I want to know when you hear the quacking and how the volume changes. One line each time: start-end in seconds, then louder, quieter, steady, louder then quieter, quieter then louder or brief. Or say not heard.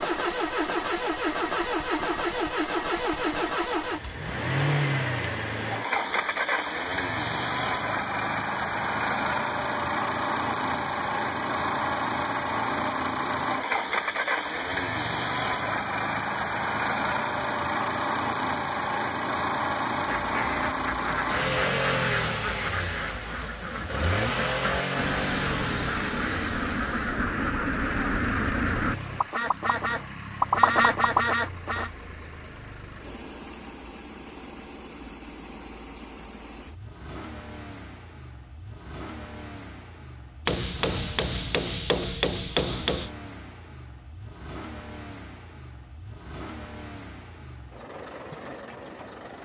19.9-31.9 louder.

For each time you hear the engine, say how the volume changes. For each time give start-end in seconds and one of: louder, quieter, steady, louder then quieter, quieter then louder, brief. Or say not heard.
0.0-49.3 quieter.